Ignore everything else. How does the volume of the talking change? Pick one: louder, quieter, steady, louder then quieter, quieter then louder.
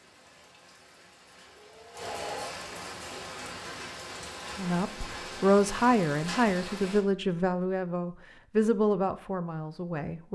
quieter.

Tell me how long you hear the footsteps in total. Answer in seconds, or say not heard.
not heard.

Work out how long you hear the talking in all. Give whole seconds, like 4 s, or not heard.
6 s.